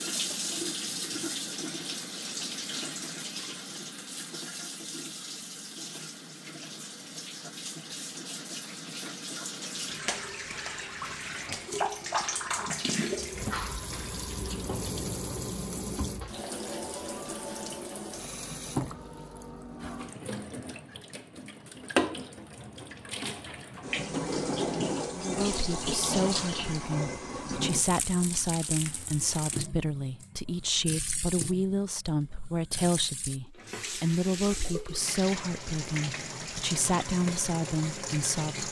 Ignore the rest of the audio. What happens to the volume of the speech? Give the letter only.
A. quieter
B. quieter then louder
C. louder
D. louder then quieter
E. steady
E.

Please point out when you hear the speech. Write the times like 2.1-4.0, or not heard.
25.1-38.6.